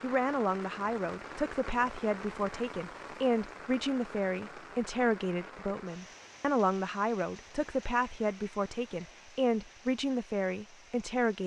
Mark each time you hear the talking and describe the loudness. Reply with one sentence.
You can hear the talking from 0.0 to 11.4 s, at a steady volume.